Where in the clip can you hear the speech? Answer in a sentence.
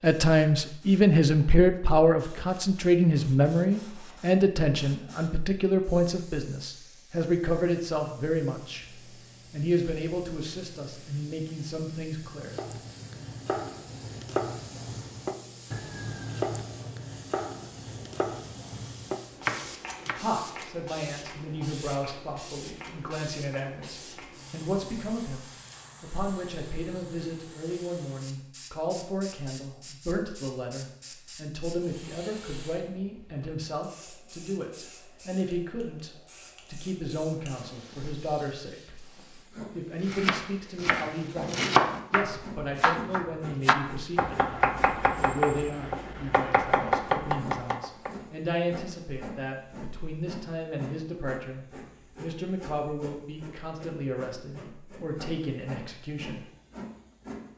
The speech can be heard from 0.0 to 12.6 s and from 20.1 to 56.4 s.